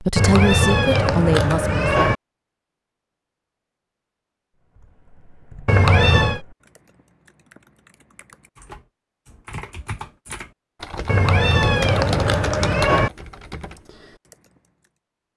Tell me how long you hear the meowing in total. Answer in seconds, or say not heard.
5 s.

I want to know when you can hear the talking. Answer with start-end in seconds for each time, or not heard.
0.0-1.8.